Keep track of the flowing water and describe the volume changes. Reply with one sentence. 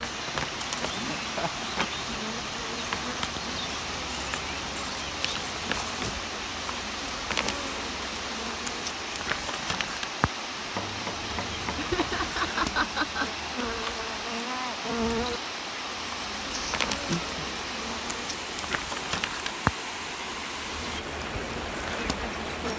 The volume of the flowing water stays about the same.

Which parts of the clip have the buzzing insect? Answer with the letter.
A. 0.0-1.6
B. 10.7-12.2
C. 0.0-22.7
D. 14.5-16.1
C.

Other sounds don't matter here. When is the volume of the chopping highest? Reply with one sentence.
The volume of the chopping peaks at 11 seconds.